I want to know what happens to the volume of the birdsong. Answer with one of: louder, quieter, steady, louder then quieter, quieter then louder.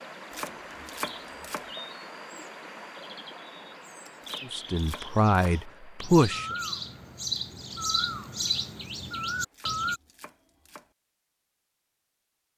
quieter then louder.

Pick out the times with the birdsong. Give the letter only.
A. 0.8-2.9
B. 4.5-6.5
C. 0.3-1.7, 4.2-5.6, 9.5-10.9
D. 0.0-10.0
D.